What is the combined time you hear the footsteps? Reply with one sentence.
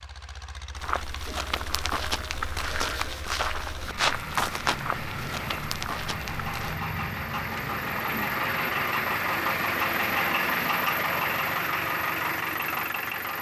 The footsteps can be heard for 6 seconds in total.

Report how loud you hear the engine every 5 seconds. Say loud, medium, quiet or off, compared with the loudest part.
quiet, loud, loud.